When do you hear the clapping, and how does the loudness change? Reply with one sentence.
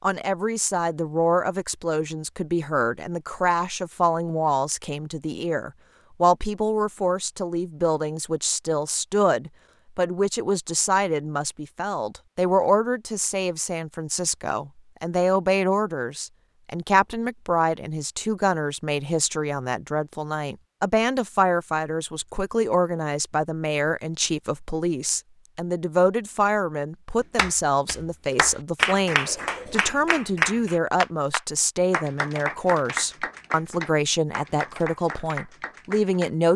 The clapping can be heard from 27.4 to 36.3 s, getting quieter.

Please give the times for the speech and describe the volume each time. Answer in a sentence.
The speech can be heard from 0.0 to 36.5 s, at a steady volume.